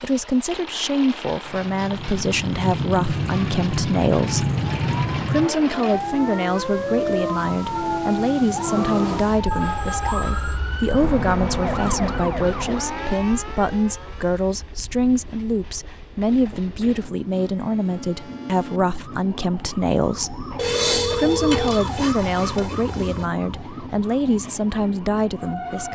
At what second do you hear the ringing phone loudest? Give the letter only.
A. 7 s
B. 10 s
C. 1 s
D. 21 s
D.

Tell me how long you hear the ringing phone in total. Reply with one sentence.
You can hear the ringing phone for 7 seconds altogether.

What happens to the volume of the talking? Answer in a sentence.
The volume of the talking stays about the same.